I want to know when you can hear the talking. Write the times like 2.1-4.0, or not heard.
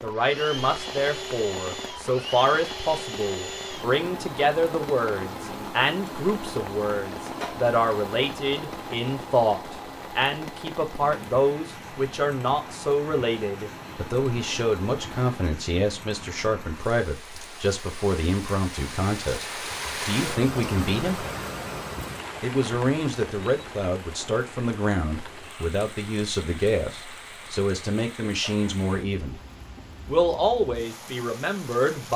0.0-19.4, 20.1-21.2, 22.4-29.4, 30.1-32.1.